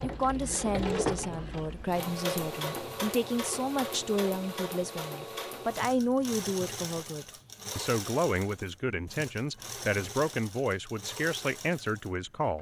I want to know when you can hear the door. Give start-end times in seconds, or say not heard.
not heard.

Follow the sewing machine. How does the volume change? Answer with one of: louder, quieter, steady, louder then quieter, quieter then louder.
quieter.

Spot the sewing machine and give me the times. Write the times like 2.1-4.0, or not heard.
0.0-12.5.